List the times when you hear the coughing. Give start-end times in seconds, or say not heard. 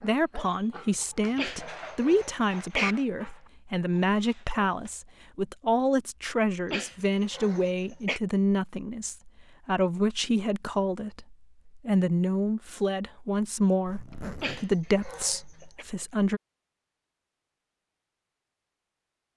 1.4-3.0, 6.7-8.2, 14.4-15.8.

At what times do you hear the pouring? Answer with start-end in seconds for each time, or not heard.
not heard.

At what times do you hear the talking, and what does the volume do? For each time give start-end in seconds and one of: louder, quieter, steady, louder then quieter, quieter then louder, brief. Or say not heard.
0.0-16.4 steady.